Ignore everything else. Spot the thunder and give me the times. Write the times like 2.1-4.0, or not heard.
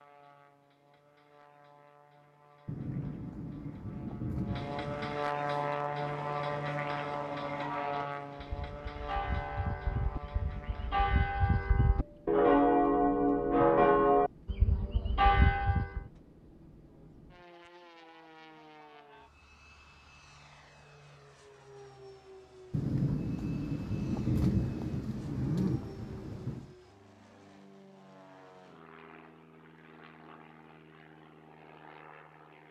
2.6-5.2, 22.7-26.8.